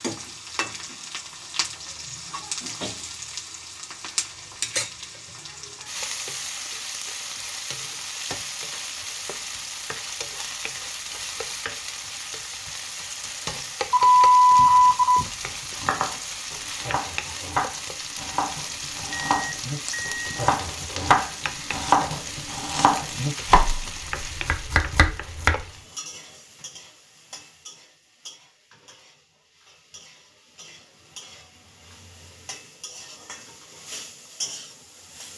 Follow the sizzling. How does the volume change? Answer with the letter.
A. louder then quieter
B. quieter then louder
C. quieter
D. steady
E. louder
C.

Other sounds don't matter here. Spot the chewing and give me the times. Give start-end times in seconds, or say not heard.
not heard.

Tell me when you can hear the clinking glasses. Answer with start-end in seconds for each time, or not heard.
not heard.